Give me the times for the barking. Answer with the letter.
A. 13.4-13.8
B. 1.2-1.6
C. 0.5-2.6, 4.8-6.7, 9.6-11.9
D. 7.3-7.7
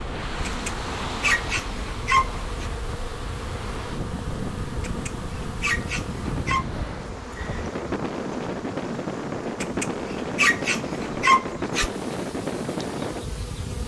C.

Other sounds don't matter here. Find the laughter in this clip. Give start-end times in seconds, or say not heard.
7.3-7.7.